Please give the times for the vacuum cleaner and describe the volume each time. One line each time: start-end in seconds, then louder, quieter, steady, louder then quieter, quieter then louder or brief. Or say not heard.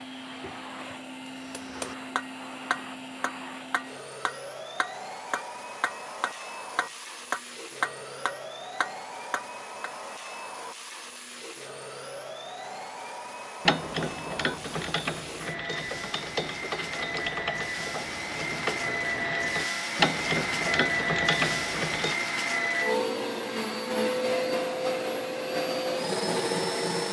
0.0-27.0 louder.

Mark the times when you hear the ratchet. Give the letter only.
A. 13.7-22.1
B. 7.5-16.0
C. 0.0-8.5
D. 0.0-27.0
A.